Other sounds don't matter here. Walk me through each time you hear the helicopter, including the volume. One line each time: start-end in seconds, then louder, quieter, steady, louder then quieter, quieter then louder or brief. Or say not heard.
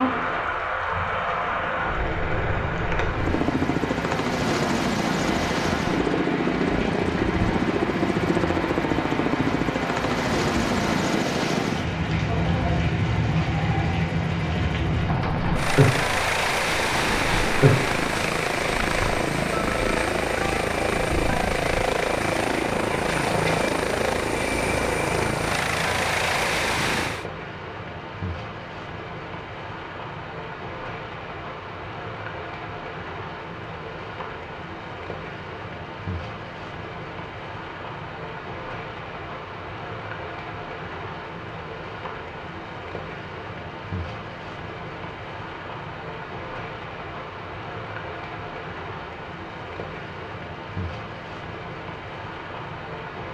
3.1-27.2 steady.